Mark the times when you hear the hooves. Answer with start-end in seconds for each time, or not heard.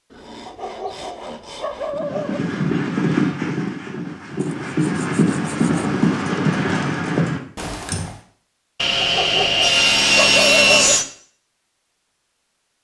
1.9-8.1.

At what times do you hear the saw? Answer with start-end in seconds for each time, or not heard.
0.1-2.0, 4.4-5.9, 8.8-11.1.